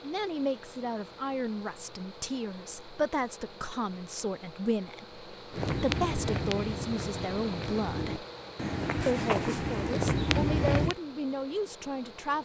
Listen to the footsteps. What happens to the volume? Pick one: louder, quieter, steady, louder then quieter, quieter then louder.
quieter then louder.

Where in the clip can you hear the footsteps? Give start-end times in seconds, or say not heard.
5.5-10.9.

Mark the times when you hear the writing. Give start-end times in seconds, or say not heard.
not heard.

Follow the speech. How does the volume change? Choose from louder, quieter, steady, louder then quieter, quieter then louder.
steady.